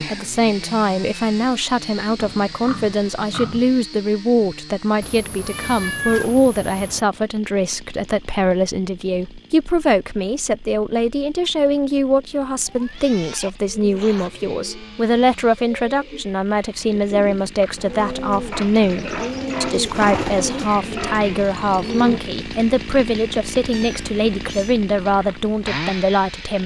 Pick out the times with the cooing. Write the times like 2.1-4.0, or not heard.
13.7-22.2.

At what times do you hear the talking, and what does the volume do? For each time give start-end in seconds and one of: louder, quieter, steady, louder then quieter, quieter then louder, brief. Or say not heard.
0.0-26.6 steady.